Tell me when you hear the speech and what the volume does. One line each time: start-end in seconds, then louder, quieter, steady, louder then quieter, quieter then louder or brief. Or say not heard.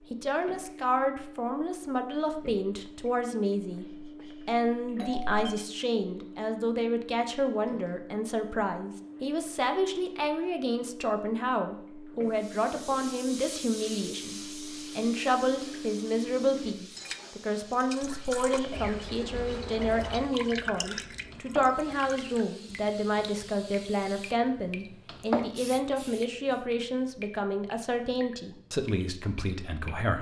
0.1-30.1 steady.